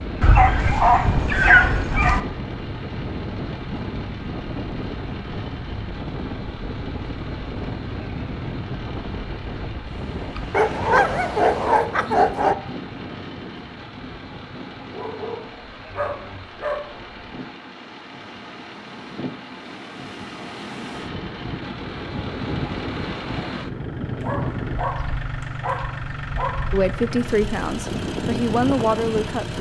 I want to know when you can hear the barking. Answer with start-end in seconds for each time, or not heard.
0.2-2.2, 10.5-12.6, 14.9-16.9, 24.2-26.7.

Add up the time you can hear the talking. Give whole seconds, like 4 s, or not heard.
3 s.